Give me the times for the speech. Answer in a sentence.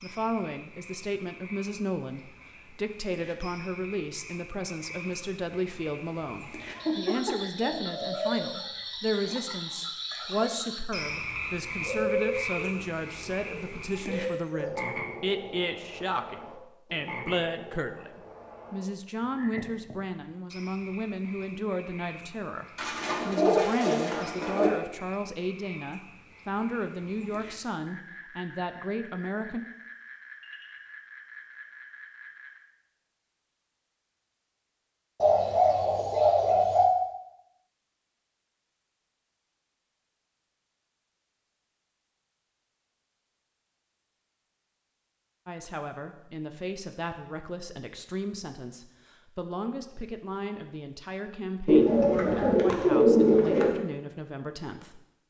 You can hear the speech from 0.0 to 22.6 s, from 23.2 to 29.6 s and from 45.5 to 55.0 s.